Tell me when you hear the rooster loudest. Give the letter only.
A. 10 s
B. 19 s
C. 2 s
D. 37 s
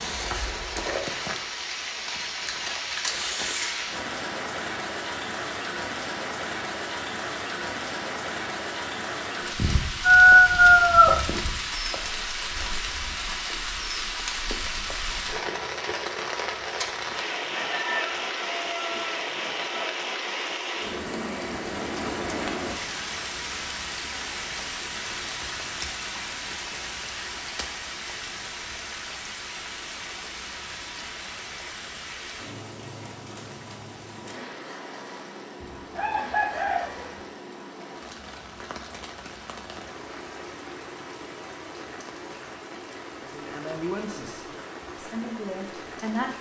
A.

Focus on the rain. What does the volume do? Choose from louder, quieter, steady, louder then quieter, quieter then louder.
quieter.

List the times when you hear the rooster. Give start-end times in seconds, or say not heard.
9.6-11.6, 17.5-19.1, 35.6-37.2.